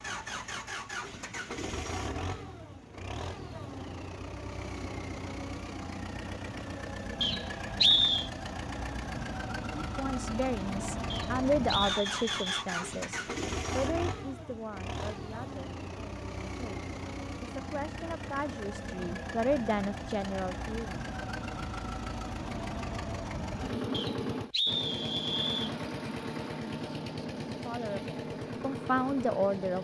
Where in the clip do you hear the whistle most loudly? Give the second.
8 s.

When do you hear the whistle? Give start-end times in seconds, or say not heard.
7.2-8.3, 11.1-12.7, 23.9-25.8.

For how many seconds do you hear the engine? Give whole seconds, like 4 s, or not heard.
30 s.